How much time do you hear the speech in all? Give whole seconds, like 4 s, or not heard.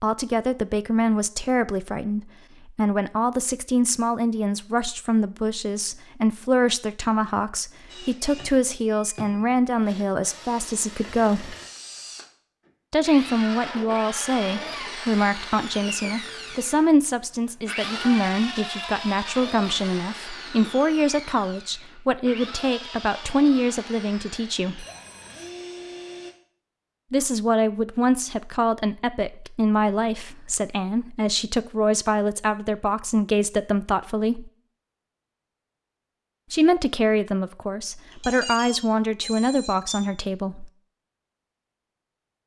35 s.